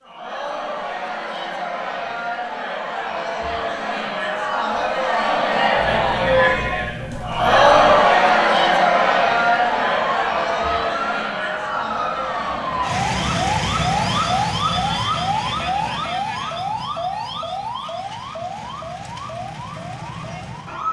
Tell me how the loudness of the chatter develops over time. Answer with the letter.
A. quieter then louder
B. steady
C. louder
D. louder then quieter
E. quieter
D.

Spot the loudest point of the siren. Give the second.
14 s.